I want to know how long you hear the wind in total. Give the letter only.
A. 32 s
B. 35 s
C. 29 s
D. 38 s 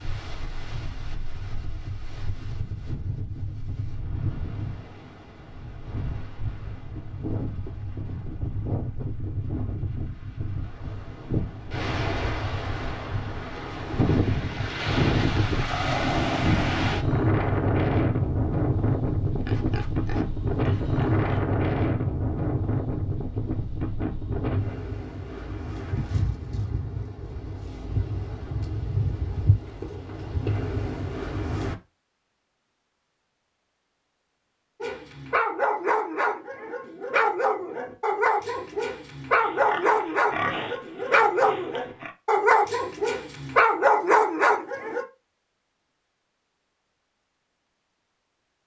A.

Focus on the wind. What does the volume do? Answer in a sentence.
The loudness of the wind goes up, then down.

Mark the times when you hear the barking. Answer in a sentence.
You can hear the barking from 34.8 to 45.0 s.